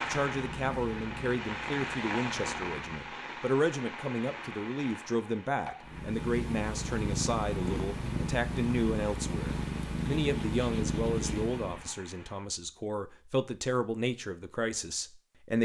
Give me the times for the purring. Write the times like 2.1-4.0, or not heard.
0.0-3.0, 5.8-11.9.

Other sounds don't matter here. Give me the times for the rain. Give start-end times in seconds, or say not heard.
0.0-12.5.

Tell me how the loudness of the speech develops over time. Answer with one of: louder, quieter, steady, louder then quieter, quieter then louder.
steady.